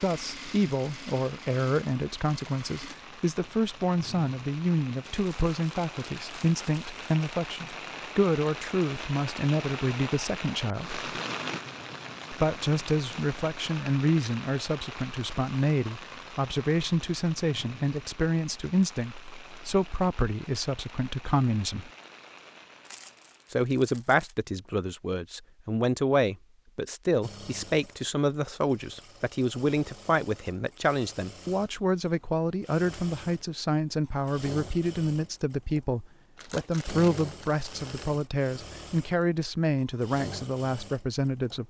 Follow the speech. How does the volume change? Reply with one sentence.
The volume of the speech stays about the same.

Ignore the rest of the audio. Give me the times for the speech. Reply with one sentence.
You can hear the speech from 0.0 to 11.0 s, from 12.3 to 21.9 s and from 23.5 to 41.6 s.